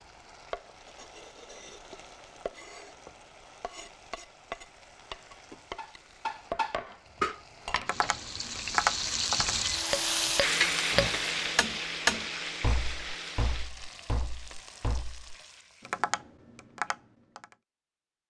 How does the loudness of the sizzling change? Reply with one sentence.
The loudness of the sizzling goes up, then down.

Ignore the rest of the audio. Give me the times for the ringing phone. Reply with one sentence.
You can't hear the ringing phone here.